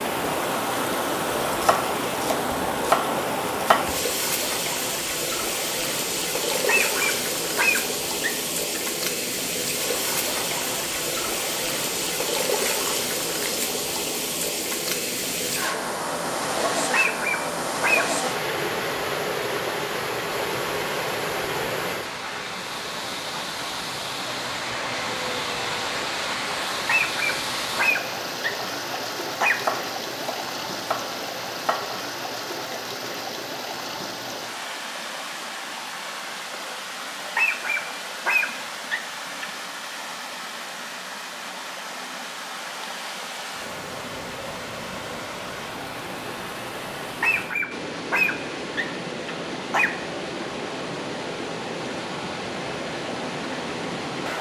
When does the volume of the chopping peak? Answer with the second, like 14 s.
3 s.